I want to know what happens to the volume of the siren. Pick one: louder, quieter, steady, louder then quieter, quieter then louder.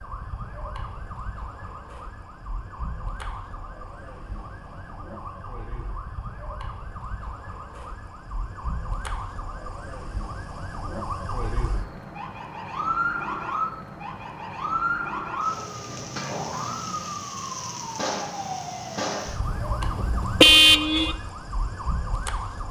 louder.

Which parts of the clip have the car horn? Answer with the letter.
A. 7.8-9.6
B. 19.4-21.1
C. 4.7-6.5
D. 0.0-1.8
B.